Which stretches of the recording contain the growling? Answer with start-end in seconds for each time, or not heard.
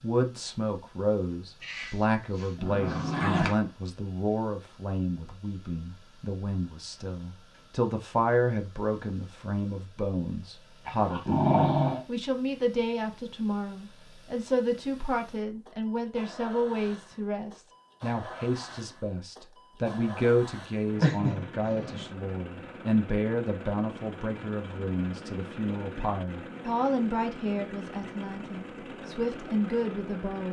1.6-3.5, 10.8-12.1, 20.9-22.1.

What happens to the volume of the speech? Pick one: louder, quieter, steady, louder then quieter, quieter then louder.
steady.